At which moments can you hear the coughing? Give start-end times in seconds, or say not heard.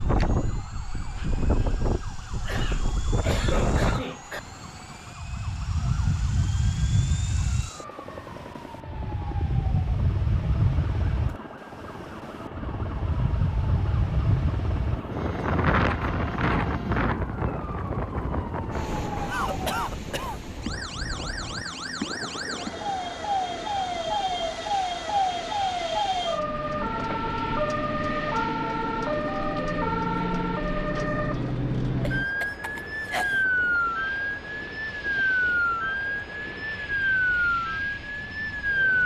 2.5-4.4, 19.2-20.4, 32.0-33.5.